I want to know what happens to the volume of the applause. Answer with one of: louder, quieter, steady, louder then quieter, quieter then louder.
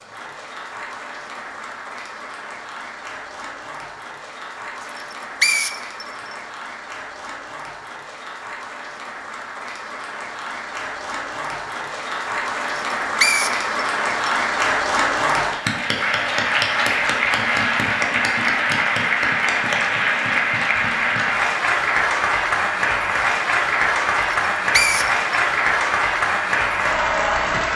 louder.